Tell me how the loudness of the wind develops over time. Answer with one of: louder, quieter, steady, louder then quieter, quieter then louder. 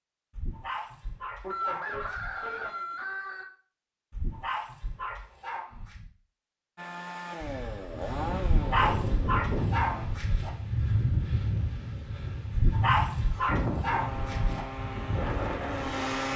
steady.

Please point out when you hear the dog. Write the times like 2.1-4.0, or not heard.
0.3-2.4, 4.1-6.1, 8.4-10.5, 12.5-14.7.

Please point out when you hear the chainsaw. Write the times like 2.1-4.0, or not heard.
6.8-10.1, 13.9-16.3.